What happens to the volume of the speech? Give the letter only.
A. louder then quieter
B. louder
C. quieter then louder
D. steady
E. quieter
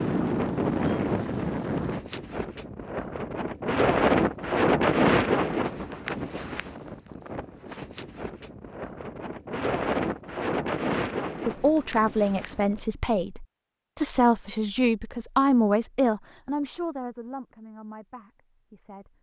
E.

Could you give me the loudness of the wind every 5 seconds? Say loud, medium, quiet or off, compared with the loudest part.
loud, loud, medium, off.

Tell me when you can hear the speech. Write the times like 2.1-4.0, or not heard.
11.4-19.1.